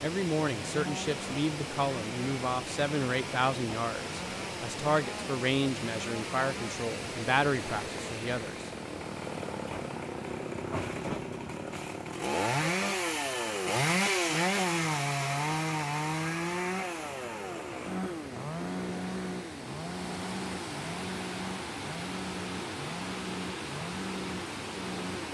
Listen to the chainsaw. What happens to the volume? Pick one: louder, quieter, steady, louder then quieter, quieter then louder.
louder then quieter.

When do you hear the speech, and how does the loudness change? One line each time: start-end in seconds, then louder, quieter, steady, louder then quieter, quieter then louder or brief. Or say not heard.
0.0-8.7 steady.